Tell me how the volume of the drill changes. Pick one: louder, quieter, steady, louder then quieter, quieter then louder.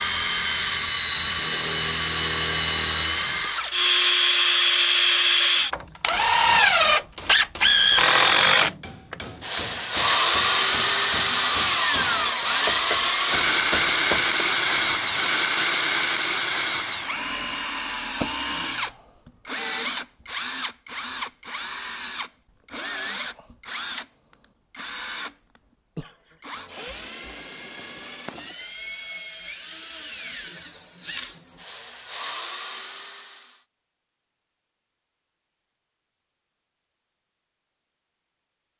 quieter.